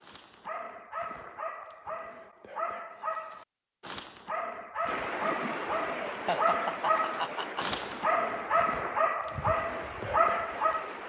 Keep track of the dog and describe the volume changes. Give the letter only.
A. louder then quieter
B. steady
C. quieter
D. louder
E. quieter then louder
D.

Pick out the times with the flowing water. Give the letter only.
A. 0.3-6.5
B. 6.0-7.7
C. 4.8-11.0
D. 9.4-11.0
C.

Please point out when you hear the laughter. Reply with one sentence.
You can hear the laughter from 6.0 to 7.7 s.